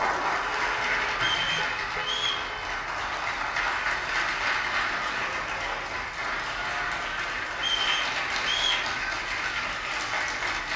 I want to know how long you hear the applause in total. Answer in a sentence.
You can hear the applause for 11 seconds altogether.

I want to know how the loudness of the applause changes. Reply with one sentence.
The volume of the applause stays about the same.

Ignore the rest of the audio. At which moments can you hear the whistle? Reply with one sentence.
The whistle can be heard from 1.1 to 2.5 s and from 7.5 to 8.8 s.